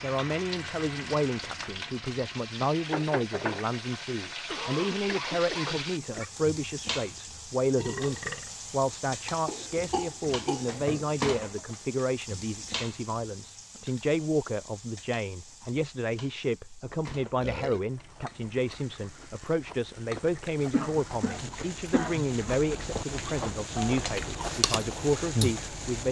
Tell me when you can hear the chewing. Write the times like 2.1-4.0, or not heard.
17.1-26.0.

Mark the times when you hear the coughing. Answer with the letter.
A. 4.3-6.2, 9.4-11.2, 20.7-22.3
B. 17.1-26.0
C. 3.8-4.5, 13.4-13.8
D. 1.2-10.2
A.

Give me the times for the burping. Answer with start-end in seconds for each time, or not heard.
7.8-8.5, 17.4-17.8.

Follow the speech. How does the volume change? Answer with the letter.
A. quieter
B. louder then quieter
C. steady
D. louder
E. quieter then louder
C.